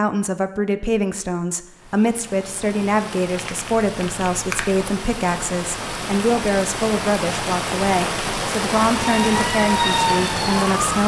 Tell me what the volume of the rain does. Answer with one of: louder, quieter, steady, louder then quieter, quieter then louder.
louder.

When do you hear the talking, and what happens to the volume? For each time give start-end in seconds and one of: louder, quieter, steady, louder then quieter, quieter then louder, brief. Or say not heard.
0.0-11.0 steady.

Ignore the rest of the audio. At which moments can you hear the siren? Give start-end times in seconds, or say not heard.
8.9-11.0.